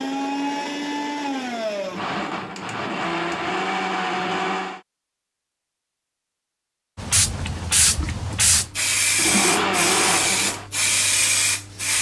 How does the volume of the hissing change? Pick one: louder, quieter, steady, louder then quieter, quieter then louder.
steady.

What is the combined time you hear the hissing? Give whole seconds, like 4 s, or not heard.
5 s.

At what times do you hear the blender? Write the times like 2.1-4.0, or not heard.
0.0-4.8, 9.2-10.7.